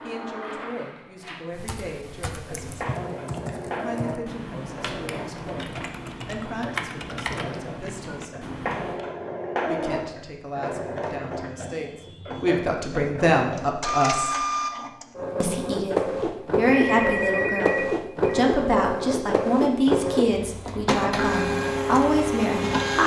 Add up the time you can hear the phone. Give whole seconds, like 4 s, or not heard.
2 s.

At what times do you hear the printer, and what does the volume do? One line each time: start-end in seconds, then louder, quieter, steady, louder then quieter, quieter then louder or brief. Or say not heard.
0.0-23.0 louder.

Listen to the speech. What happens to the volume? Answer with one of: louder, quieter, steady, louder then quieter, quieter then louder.
louder.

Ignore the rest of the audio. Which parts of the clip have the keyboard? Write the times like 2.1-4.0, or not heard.
1.5-9.1.